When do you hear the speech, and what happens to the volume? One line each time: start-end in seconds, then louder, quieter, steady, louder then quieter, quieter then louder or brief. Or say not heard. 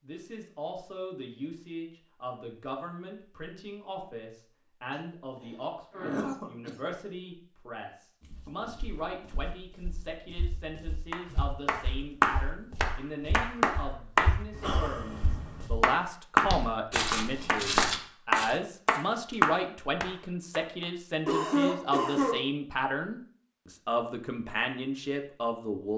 0.0-25.9 louder.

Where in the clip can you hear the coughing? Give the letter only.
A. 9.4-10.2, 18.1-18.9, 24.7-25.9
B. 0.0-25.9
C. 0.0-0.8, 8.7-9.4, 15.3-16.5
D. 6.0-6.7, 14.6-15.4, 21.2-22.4
D.